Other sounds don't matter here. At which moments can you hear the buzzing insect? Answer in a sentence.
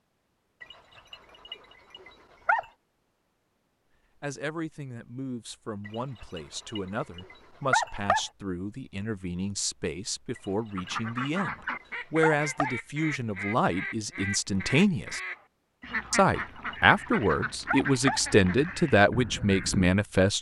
You can't hear the buzzing insect here.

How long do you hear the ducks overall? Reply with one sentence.
The ducks can be heard for 9 seconds in total.